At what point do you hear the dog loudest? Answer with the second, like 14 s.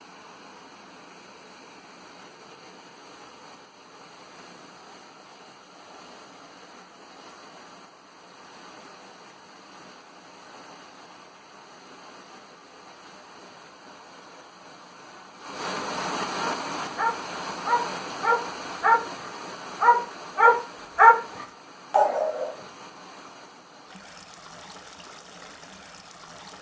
21 s.